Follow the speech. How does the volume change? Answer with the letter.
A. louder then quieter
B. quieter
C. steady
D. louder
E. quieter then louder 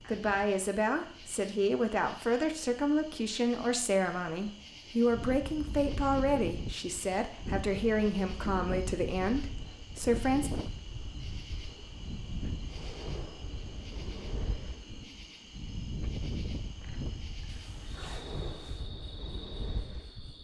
C.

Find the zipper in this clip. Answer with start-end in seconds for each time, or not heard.
17.4-18.9.